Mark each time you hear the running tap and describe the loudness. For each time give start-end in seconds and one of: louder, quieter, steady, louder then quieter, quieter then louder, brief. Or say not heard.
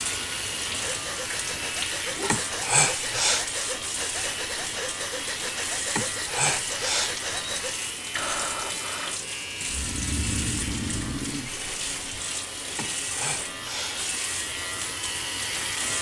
0.0-15.9 steady.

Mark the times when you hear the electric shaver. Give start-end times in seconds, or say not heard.
0.0-15.9.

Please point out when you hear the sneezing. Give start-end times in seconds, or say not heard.
2.2-3.5, 6.0-7.2, 12.8-14.1.